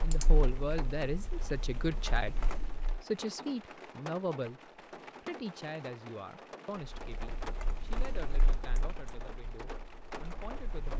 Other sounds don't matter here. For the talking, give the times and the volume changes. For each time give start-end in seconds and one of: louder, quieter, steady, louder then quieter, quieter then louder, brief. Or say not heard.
0.0-10.9 quieter.